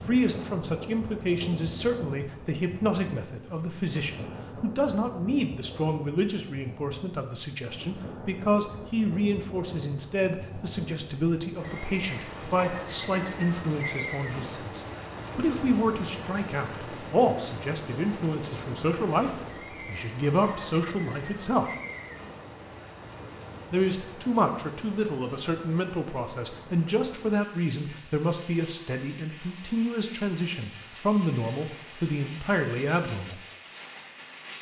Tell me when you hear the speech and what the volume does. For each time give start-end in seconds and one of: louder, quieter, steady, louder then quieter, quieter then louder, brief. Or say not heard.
0.0-21.8 steady
23.7-33.4 steady.